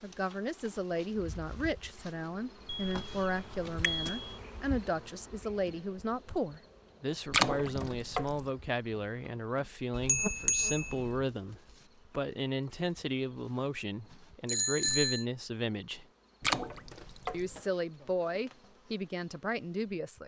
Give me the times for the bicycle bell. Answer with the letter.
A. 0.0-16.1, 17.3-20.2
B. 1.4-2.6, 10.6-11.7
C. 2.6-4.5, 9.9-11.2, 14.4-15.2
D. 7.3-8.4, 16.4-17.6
C.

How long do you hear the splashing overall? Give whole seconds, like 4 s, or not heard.
2 s.